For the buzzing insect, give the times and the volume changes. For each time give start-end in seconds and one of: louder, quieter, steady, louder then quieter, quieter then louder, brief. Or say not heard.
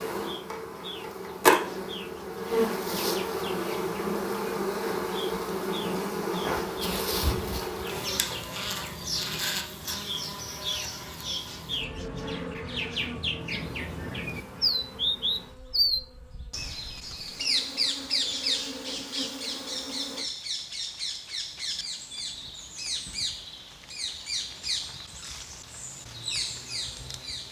0.0-20.2 quieter.